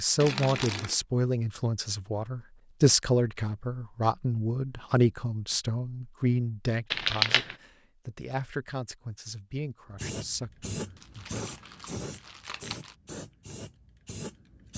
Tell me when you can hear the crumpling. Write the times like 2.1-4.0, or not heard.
0.2-0.9, 6.9-7.5, 10.9-12.9.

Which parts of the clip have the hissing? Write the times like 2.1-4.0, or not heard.
9.9-14.7.